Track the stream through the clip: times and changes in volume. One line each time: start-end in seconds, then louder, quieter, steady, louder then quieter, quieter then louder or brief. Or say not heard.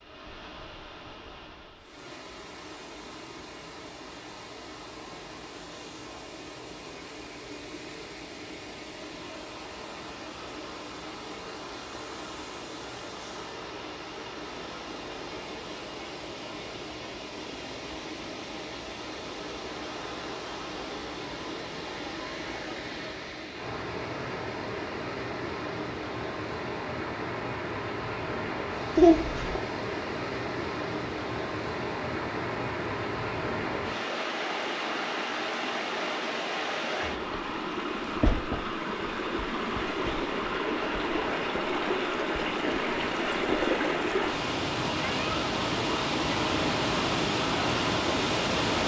0.0-48.8 louder.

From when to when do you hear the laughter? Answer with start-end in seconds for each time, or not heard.
28.9-29.6.